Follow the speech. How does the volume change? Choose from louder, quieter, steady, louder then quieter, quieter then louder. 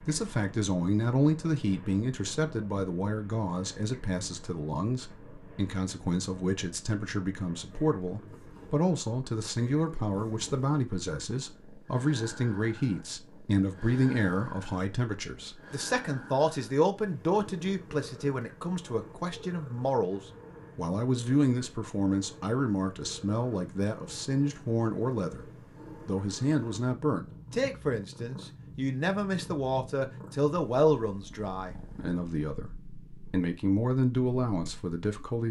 steady.